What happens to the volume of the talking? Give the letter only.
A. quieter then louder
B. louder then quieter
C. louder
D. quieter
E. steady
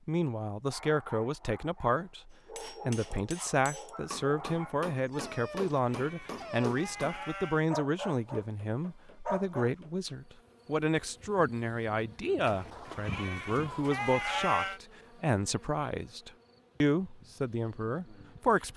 E.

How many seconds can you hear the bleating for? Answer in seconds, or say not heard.
5 s.